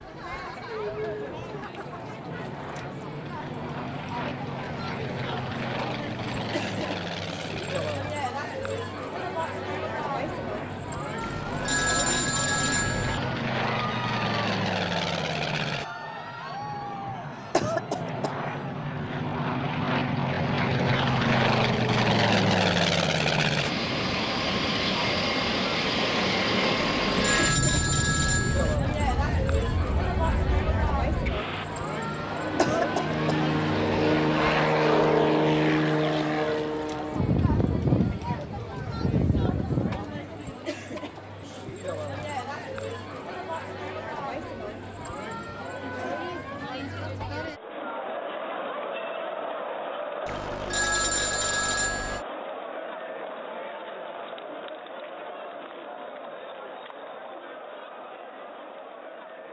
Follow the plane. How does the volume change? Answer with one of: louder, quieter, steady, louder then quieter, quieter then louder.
louder.